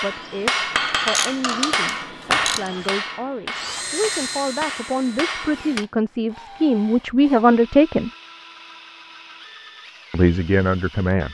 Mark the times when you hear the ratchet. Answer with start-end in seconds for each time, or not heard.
1.0-2.7.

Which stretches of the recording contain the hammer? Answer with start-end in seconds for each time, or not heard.
0.0-5.8.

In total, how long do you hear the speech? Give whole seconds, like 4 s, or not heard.
9 s.